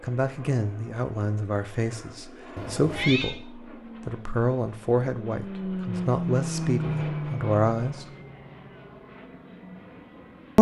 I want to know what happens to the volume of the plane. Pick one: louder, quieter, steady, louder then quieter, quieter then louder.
louder then quieter.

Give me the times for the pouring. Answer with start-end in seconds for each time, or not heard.
not heard.